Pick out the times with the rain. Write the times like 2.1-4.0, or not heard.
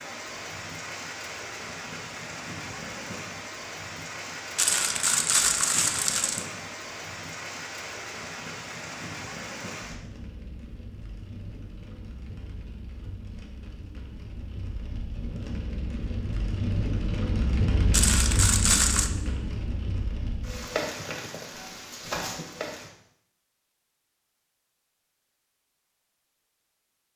0.0-22.9.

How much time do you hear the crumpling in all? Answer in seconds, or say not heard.
3 s.